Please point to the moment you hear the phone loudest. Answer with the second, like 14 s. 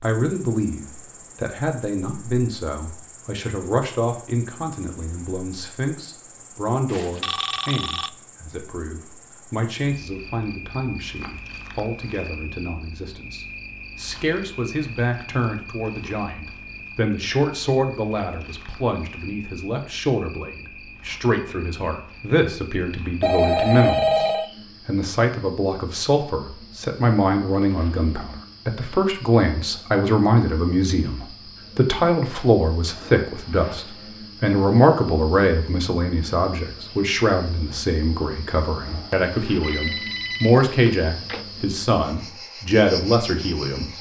24 s.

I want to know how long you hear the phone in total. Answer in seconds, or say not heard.
4 s.